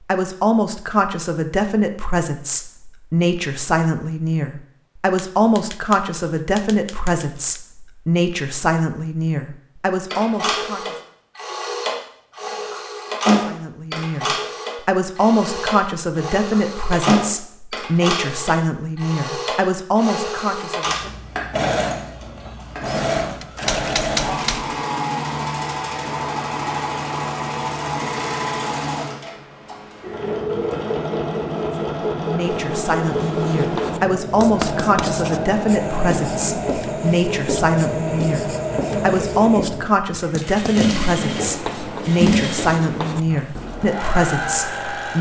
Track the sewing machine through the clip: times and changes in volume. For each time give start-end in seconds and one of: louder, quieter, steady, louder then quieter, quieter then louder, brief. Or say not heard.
10.1-45.1 steady.